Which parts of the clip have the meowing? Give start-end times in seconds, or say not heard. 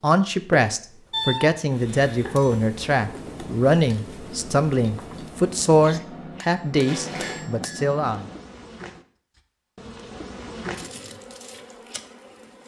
1.1-2.3, 6.7-7.5.